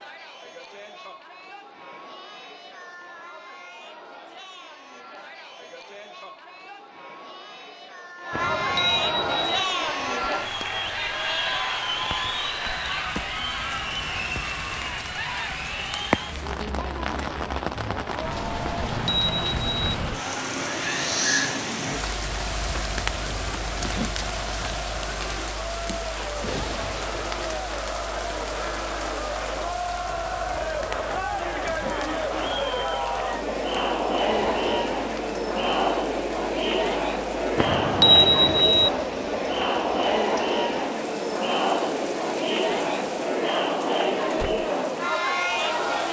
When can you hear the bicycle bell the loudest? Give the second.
38 s.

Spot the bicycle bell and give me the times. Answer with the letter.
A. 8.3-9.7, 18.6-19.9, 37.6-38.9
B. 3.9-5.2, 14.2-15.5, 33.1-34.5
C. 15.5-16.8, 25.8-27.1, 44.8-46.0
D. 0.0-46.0
A.